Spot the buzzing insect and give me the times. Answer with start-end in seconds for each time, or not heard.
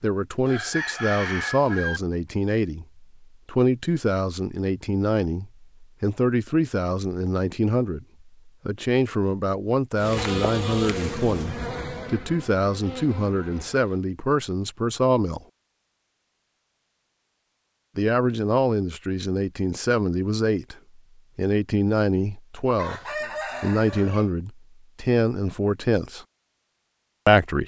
9.9-14.0.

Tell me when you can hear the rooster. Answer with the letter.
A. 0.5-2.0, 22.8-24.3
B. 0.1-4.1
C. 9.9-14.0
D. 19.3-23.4
A.